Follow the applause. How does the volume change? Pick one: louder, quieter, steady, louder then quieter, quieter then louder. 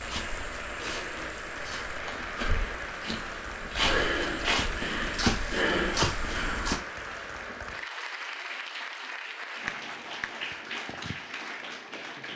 steady.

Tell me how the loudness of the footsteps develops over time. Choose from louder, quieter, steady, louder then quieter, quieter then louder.
louder.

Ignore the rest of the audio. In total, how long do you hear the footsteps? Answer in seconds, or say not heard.
7 s.